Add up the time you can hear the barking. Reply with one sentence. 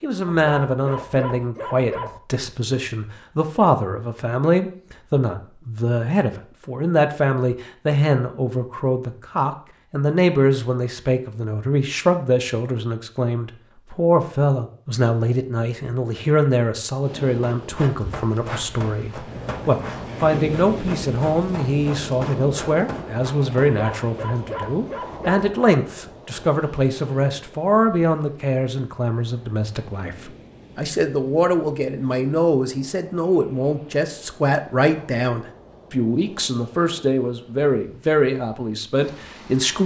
The barking can be heard for 4 seconds in total.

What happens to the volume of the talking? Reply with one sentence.
The loudness of the talking stays about the same.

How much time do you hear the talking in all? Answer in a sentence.
You can hear the talking for 40 seconds altogether.